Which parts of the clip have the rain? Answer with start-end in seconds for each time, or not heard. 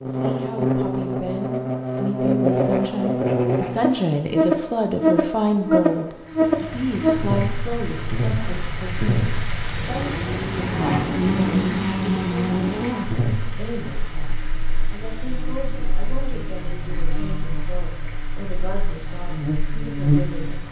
6.2-20.6.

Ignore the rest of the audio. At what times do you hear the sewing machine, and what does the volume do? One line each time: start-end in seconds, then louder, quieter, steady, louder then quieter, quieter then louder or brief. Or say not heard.
not heard.